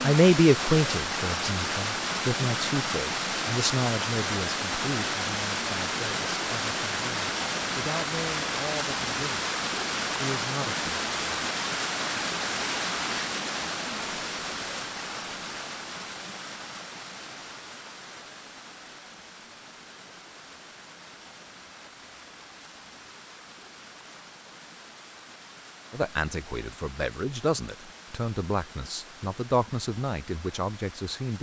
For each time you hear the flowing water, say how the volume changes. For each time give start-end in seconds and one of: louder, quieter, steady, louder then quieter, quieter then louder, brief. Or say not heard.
0.0-31.3 quieter.